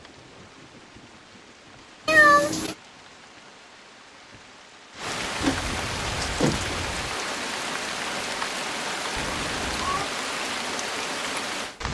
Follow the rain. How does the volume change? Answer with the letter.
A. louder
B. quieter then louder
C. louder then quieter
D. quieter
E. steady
A.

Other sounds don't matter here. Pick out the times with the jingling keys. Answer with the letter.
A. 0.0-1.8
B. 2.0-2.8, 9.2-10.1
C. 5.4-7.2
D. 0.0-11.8
C.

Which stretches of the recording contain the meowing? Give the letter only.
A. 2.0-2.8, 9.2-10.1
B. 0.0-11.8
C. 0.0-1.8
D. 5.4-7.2
A.